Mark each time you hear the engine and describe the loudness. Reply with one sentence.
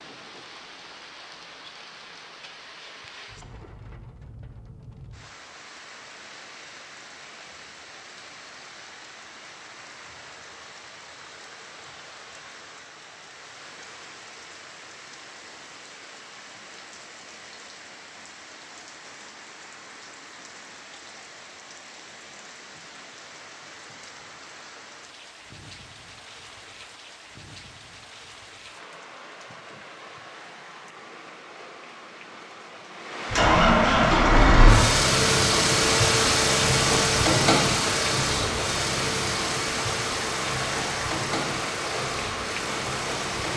The engine can be heard from 33.3 to 43.5 s, getting quieter.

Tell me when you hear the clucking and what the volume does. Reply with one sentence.
You can't hear the clucking here.